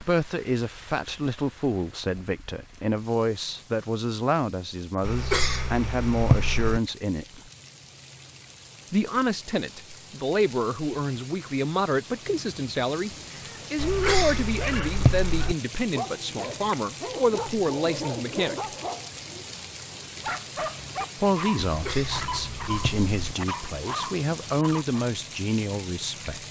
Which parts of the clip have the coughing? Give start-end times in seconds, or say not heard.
5.0-6.8, 13.8-15.6, 21.6-23.4.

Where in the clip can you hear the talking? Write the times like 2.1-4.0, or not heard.
0.0-7.4, 8.9-18.6, 21.1-26.4.